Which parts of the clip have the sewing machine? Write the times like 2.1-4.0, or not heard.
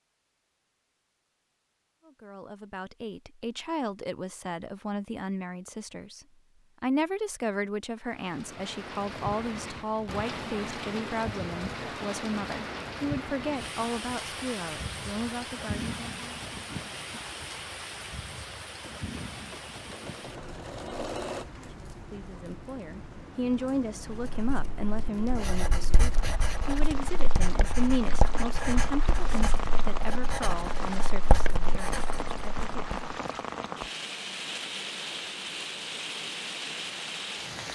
18.8-21.4.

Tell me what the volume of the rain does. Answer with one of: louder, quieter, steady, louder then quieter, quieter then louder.
quieter then louder.